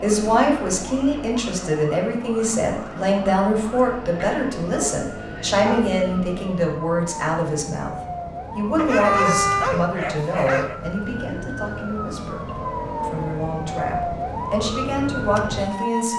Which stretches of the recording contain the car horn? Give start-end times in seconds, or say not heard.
9.0-9.7.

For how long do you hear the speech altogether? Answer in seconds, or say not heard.
15 s.